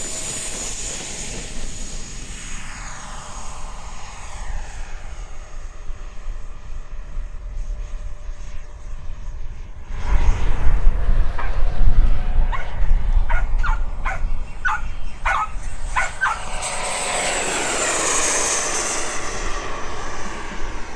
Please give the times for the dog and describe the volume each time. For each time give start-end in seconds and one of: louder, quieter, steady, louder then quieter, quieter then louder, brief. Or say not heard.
10.9-16.4 louder.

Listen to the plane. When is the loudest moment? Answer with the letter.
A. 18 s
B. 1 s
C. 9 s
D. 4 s
A.